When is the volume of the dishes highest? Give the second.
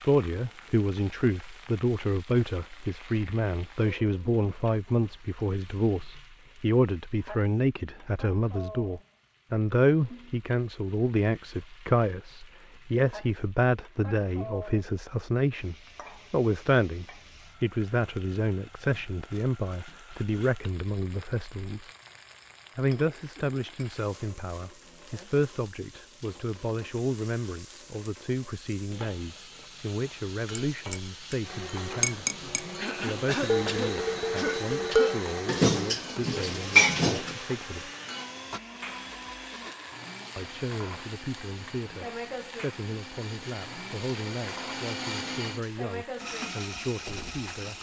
37 s.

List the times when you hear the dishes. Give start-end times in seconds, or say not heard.
30.7-32.6, 33.5-37.4.